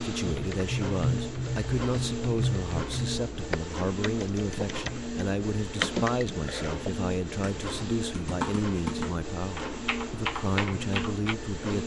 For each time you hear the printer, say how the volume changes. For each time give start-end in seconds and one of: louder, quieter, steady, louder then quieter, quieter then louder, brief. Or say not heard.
0.0-11.8 steady.